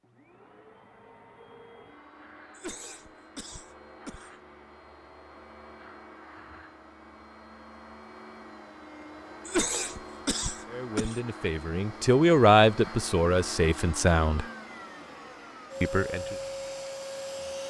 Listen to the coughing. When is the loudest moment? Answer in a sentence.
The loudest moment of the coughing is at 10 seconds.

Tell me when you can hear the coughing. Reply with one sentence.
You can hear the coughing from 2.5 to 4.3 s and from 9.4 to 11.2 s.